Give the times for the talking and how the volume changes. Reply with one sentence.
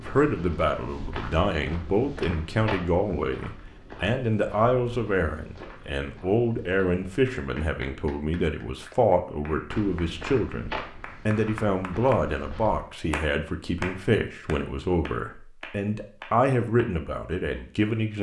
The talking can be heard from 0.0 to 18.1 s, at a steady volume.